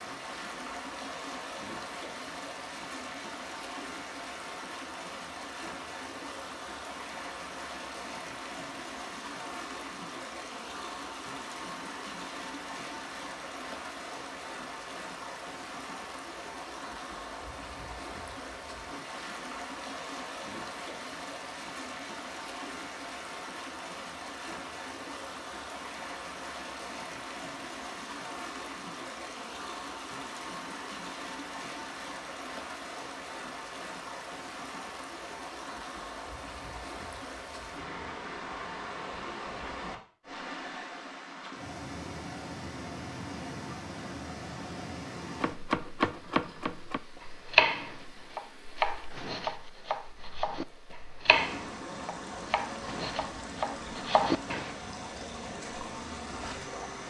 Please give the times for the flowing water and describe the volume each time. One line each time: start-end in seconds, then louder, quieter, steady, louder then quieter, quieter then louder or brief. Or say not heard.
0.0-57.0 steady.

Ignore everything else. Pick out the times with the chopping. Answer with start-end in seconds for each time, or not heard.
45.4-54.8.